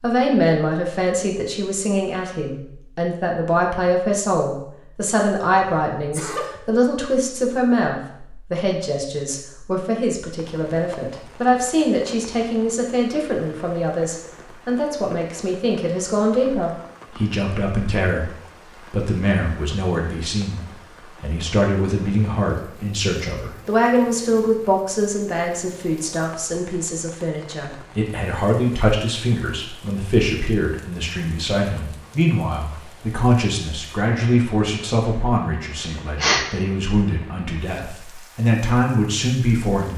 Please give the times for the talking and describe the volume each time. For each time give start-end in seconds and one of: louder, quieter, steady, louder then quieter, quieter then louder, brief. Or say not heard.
0.0-39.9 steady.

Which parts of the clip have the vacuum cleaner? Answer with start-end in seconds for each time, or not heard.
not heard.